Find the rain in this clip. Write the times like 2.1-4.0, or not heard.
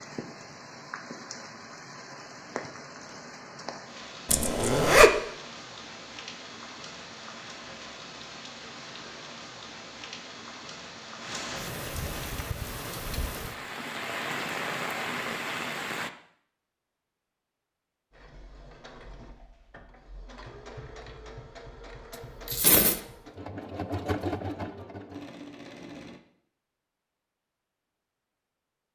0.0-16.1.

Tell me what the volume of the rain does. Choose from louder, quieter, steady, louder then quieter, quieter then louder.
louder.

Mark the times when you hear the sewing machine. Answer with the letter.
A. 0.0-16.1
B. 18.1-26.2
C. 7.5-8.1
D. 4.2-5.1
B.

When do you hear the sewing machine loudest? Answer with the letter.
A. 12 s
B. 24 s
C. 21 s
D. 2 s
B.